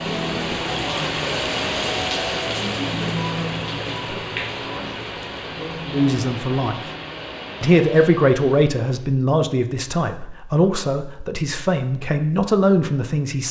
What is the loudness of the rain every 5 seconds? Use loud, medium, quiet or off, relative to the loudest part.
loud, medium, off.